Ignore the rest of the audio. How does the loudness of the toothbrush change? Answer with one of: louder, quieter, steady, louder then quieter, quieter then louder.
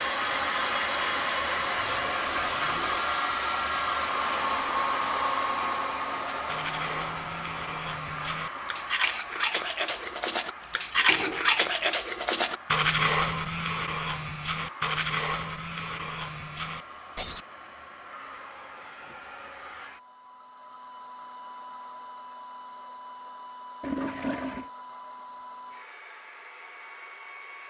louder then quieter.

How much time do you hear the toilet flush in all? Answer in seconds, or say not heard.
3 s.